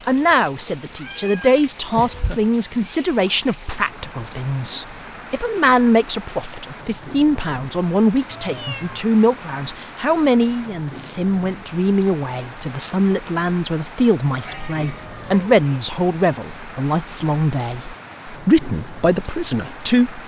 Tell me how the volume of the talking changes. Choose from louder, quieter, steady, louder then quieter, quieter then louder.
steady.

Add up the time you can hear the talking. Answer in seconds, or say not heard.
20 s.